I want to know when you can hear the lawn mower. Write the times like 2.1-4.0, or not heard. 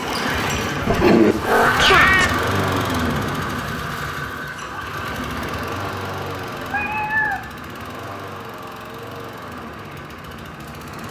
0.0-11.0.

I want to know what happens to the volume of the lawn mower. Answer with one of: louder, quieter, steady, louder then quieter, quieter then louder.
quieter.